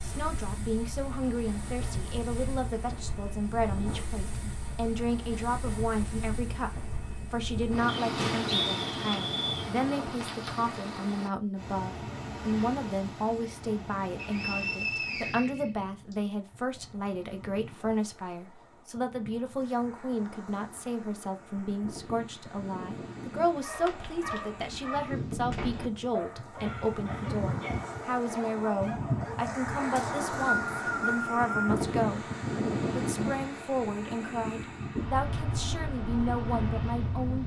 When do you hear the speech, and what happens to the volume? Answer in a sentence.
The speech can be heard from 0.0 to 32.2 s, at a steady volume; and from 33.0 to 37.4 s, at a steady volume.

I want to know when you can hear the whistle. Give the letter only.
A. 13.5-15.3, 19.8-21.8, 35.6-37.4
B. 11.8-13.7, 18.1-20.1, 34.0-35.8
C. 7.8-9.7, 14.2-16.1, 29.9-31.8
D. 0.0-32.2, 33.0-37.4
C.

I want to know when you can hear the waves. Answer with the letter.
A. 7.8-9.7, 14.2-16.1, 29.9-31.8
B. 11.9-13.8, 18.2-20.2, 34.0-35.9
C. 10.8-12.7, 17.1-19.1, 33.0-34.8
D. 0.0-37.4
D.